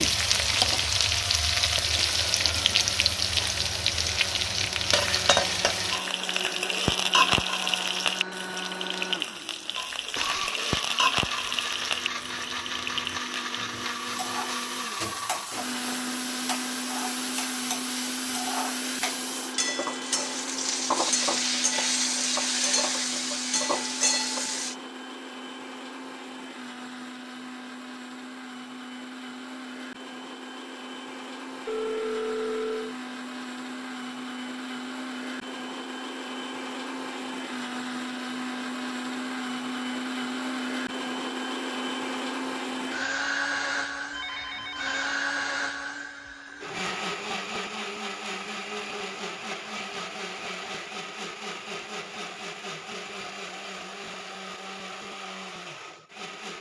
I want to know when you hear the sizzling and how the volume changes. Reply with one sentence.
The sizzling can be heard from 0.0 to 24.8 s, getting quieter then louder.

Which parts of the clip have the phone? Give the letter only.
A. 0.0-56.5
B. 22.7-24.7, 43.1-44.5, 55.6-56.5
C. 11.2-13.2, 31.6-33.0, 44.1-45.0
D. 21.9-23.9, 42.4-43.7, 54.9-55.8
C.